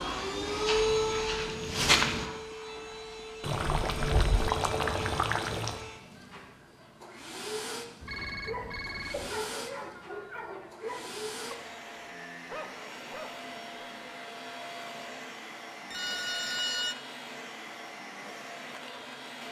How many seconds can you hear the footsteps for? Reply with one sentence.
You can hear the footsteps for 2 seconds altogether.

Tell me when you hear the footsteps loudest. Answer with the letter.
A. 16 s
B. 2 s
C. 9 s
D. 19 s
B.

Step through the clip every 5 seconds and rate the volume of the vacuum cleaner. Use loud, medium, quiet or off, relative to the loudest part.
loud, medium, medium, medium.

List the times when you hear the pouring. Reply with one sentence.
The pouring can be heard from 3.4 to 5.8 s.